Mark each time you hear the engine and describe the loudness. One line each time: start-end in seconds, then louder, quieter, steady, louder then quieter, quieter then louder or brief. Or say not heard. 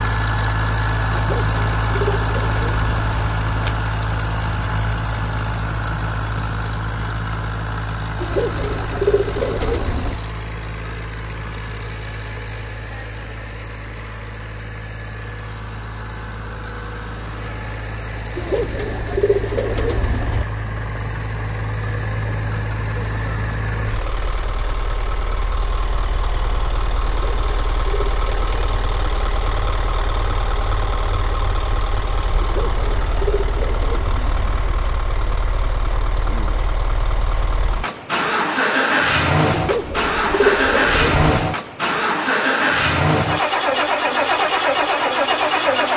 0.0-45.9 quieter then louder.